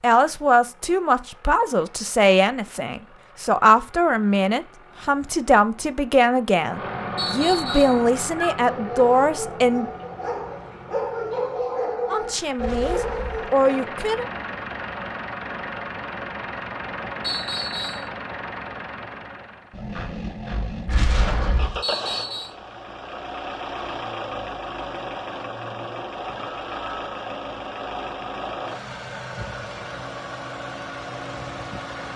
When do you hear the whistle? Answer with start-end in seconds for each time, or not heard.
7.2-8.0, 17.2-18.1, 21.8-22.6.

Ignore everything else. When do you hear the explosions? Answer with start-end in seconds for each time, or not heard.
12.6-13.3, 20.9-21.8.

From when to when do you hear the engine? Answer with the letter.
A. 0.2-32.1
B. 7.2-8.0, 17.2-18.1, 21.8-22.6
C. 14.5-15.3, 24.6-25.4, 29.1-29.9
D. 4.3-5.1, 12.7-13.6
A.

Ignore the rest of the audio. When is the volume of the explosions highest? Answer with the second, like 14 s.
21 s.